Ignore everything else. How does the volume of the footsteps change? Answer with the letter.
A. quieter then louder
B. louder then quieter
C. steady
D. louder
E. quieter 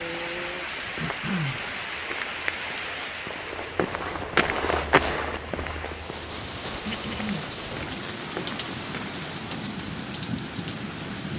B.